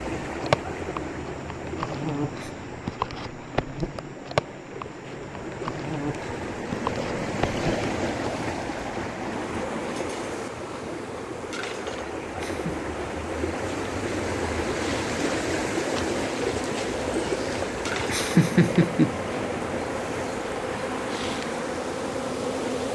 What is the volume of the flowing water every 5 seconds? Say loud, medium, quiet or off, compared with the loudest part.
medium, loud, loud, loud, medium.